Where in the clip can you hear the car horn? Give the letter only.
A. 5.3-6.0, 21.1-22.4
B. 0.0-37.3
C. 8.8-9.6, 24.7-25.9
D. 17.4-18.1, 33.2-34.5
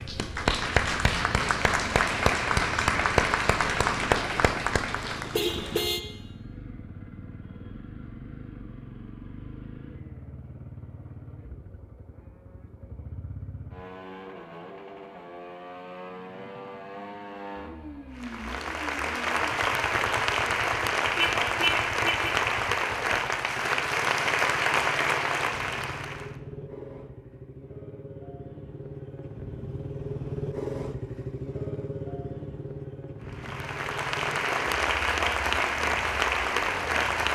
A.